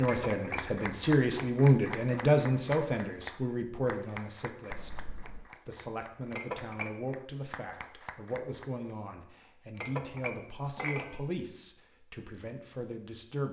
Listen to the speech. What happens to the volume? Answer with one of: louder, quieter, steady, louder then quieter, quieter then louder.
quieter.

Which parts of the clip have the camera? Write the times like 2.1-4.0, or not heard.
4.7-5.5.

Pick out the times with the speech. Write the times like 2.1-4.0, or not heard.
0.0-13.4.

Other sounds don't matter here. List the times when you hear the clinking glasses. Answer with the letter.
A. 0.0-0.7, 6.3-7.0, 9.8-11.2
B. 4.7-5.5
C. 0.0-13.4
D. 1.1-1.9
A.